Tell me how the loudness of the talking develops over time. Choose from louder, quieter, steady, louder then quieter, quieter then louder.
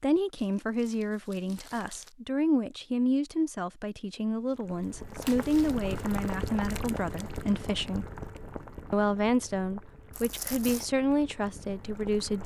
steady.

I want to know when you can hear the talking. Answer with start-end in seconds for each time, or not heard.
0.0-8.1, 8.9-12.4.